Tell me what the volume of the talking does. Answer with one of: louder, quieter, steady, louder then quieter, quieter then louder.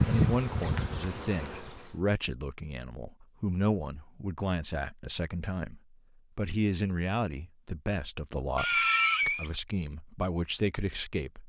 steady.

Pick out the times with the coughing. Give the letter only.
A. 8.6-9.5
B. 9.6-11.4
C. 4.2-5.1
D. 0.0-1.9
A.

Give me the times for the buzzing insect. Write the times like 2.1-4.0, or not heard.
0.0-1.9.